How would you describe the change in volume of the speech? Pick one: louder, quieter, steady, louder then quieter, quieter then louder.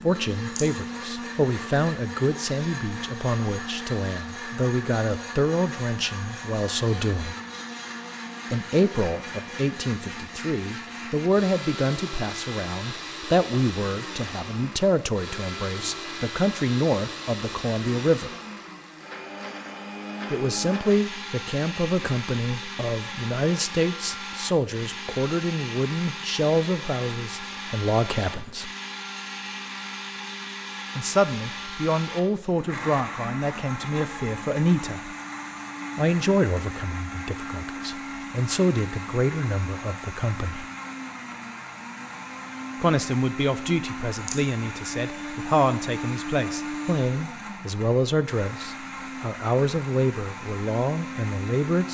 steady.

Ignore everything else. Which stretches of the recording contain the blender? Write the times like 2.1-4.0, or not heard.
0.0-51.8.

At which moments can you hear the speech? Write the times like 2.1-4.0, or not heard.
0.0-7.3, 8.5-18.3, 20.3-28.7, 30.9-35.1, 36.0-40.6, 42.8-51.8.